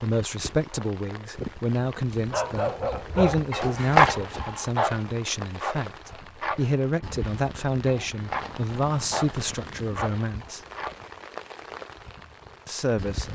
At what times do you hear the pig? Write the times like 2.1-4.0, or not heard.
not heard.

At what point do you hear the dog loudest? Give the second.
4 s.